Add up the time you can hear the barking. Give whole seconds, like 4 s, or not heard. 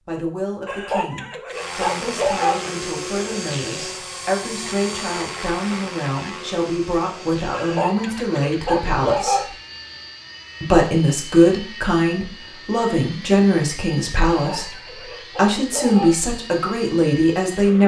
6 s.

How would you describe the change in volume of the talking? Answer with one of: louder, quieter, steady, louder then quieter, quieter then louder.
louder.